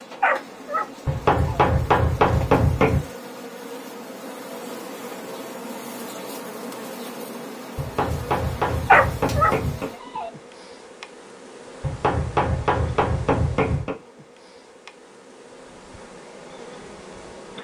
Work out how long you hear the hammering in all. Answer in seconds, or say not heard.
6 s.